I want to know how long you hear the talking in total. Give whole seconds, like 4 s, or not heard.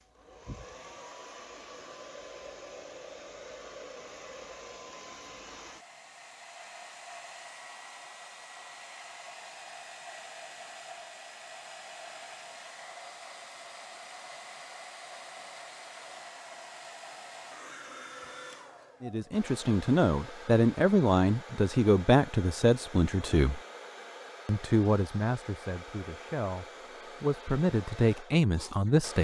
9 s.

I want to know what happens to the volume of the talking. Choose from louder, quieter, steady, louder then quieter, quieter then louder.
quieter then louder.